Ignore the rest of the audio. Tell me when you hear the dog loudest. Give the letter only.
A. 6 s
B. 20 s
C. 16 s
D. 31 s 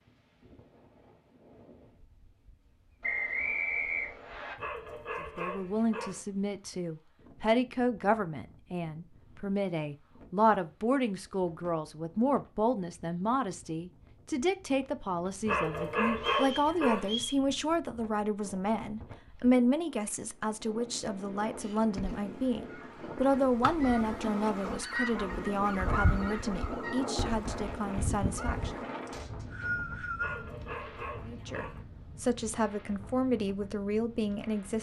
C.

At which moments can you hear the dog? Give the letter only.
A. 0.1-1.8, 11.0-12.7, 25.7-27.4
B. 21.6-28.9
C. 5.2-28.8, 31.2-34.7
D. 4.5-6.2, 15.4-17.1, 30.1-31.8
D.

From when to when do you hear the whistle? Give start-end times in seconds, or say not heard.
3.0-4.5, 16.1-17.4, 29.1-30.5.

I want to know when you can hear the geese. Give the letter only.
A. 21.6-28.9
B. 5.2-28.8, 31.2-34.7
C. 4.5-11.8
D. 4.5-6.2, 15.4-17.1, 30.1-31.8
A.